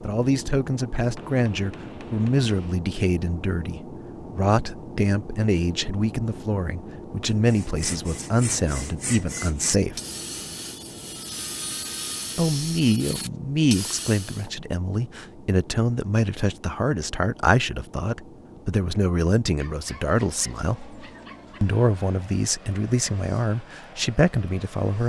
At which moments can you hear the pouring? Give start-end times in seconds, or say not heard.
not heard.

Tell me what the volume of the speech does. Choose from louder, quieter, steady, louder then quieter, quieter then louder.
steady.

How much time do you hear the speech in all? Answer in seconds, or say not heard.
22 s.